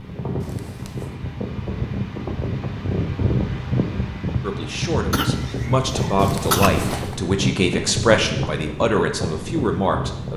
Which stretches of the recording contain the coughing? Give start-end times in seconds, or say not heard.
5.1-6.7.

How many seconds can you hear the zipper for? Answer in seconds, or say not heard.
2 s.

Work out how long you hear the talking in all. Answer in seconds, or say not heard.
6 s.